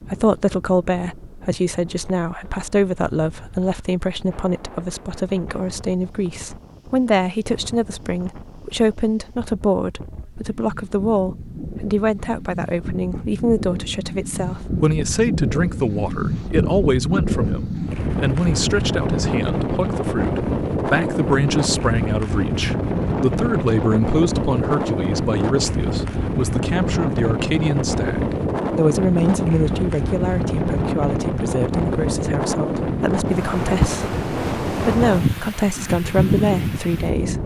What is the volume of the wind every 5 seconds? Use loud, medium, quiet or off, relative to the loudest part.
quiet, quiet, medium, loud, loud, loud, loud, loud.